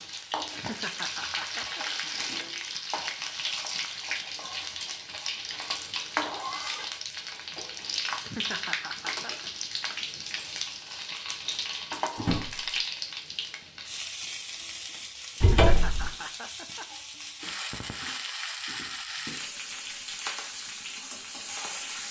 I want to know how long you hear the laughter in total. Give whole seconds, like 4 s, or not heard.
4 s.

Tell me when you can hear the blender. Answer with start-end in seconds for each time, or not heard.
not heard.